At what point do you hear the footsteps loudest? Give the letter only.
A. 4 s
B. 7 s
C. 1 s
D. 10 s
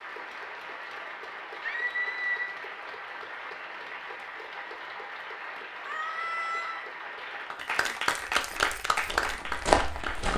D.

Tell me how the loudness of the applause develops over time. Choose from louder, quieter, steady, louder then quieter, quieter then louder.
louder.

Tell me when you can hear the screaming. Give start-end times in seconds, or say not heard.
1.6-2.5, 5.8-6.8.